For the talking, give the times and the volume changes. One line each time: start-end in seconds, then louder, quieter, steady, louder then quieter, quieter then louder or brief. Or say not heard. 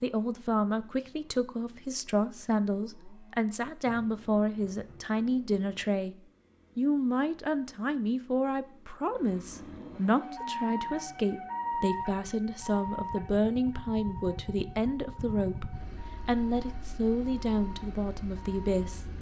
0.0-6.2 steady
6.8-19.1 steady.